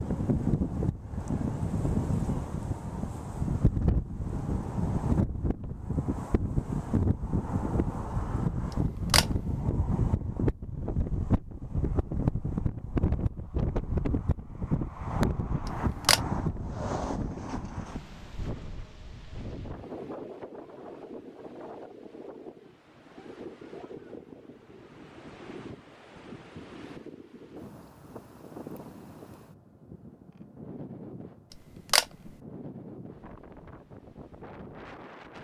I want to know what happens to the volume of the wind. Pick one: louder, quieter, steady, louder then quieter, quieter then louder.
quieter.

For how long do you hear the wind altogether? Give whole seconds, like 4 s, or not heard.
35 s.